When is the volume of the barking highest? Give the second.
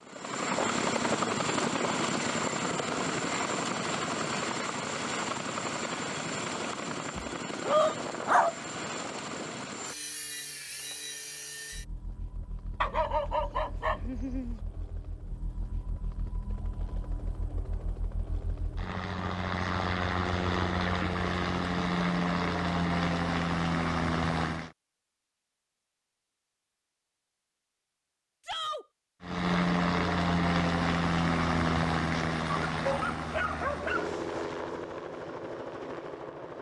8 s.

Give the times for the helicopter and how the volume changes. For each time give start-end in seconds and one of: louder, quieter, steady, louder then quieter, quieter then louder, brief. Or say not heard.
0.0-24.7 quieter then louder
29.2-36.5 quieter.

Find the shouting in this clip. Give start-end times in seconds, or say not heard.
7.7-8.1, 28.4-28.9.